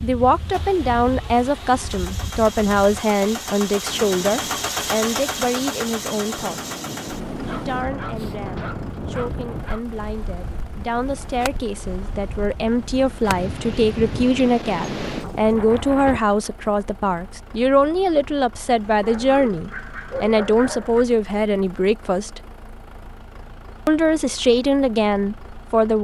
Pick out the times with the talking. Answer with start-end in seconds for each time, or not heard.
0.0-6.8, 7.5-22.4, 23.9-25.9.